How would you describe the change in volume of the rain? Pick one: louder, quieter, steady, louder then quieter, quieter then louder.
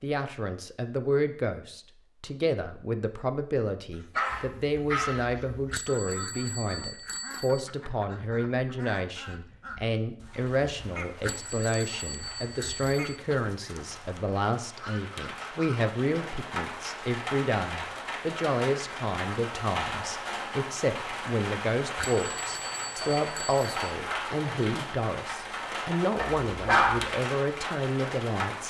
louder.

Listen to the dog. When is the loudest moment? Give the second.
27 s.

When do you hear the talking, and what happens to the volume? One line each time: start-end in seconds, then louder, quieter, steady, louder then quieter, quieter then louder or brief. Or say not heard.
0.0-28.6 steady.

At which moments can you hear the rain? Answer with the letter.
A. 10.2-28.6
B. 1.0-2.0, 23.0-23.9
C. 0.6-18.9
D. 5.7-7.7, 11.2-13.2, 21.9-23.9
A.